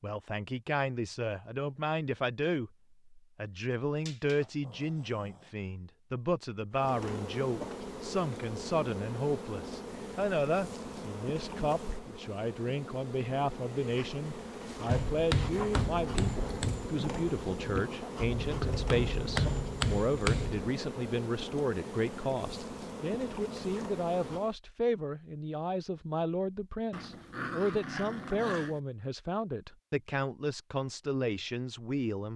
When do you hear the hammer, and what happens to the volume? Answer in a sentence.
The hammer can be heard from 14.8 to 20.6 s, getting quieter then louder.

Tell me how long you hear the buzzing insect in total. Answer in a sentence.
The buzzing insect can be heard for 18 seconds in total.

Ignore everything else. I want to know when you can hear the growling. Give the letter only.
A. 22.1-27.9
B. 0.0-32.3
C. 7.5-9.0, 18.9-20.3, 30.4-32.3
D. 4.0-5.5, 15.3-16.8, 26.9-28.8
D.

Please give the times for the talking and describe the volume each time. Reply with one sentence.
The talking can be heard from 0.0 to 32.3 s, at a steady volume.